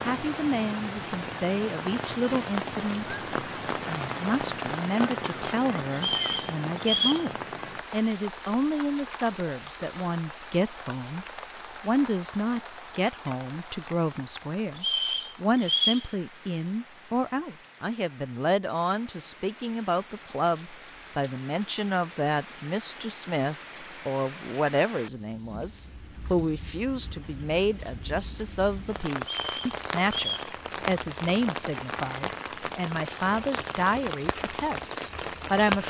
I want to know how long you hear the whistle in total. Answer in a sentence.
You can hear the whistle for 4 seconds altogether.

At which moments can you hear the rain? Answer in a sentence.
You can hear the rain from 0.0 to 35.8 s.